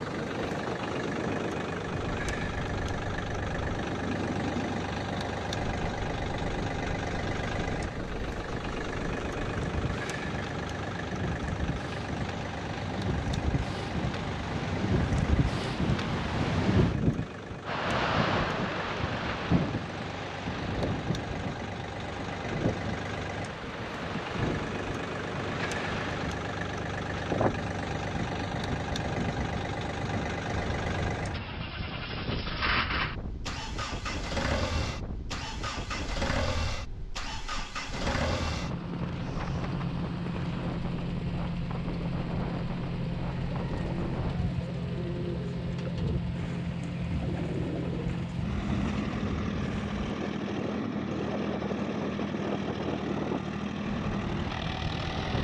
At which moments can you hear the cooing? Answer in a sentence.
You can hear the cooing from 43.2 to 50.0 s.